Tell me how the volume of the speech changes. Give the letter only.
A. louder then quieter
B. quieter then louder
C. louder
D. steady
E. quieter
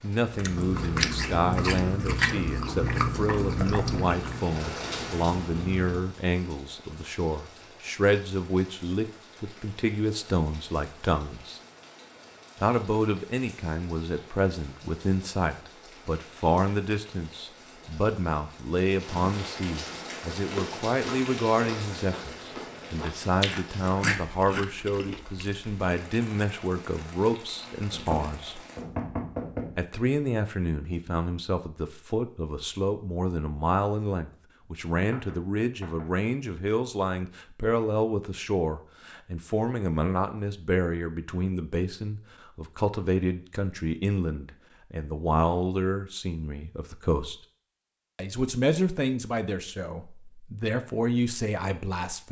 D.